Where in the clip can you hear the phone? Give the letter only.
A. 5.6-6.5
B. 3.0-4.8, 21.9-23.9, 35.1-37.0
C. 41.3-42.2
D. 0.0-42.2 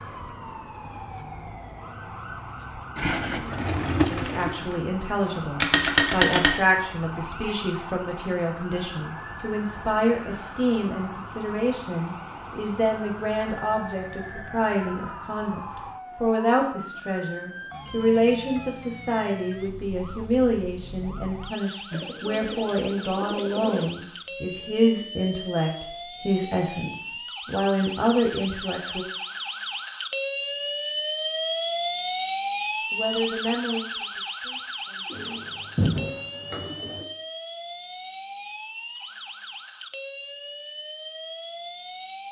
A.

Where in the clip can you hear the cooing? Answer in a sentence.
You can hear the cooing from 3.0 to 4.8 s, from 21.9 to 23.9 s and from 35.1 to 37.0 s.